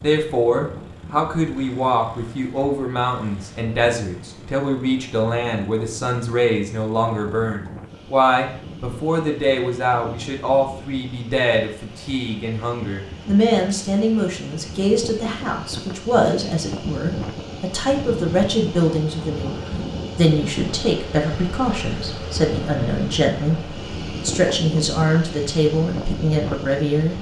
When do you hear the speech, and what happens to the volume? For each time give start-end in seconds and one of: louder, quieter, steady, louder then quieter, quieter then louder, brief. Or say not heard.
0.0-27.1 steady.